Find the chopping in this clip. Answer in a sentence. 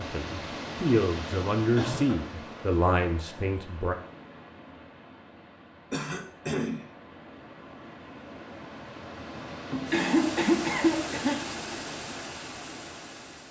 You can't hear the chopping here.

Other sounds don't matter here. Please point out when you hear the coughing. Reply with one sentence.
You can hear the coughing from 1.8 to 2.2 s, from 5.9 to 6.8 s and from 9.3 to 11.4 s.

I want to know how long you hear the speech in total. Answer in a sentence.
You can hear the speech for 4 seconds altogether.